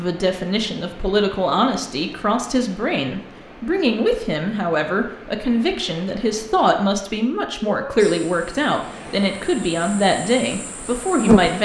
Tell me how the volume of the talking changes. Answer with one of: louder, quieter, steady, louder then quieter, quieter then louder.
steady.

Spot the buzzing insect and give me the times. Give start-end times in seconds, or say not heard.
8.0-11.6.